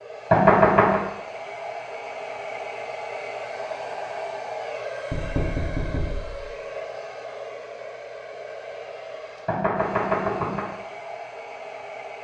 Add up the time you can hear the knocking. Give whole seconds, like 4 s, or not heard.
3 s.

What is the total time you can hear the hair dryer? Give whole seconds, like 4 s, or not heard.
12 s.